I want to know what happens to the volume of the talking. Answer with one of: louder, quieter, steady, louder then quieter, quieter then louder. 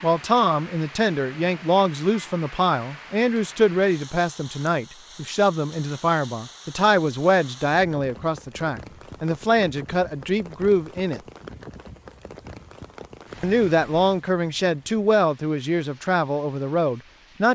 steady.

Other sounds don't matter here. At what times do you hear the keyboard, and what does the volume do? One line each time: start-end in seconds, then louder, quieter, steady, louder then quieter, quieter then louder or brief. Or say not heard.
not heard.